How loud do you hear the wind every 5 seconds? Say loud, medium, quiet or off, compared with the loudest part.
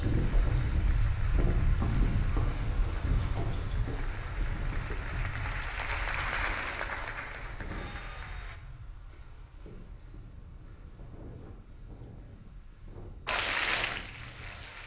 loud, quiet, quiet.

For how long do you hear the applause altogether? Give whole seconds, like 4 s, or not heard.
10 s.